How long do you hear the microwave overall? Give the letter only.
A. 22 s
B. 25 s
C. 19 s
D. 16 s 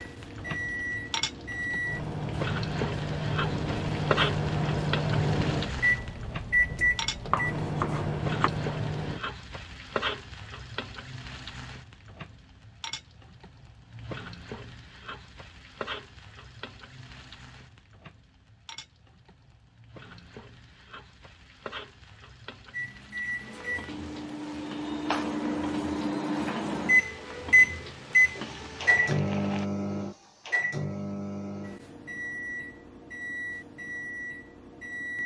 A.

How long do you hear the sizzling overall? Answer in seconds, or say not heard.
30 s.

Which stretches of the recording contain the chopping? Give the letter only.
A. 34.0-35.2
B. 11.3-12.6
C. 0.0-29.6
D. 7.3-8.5
D.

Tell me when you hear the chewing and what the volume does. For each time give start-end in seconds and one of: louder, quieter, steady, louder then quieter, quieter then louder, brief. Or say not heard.
not heard.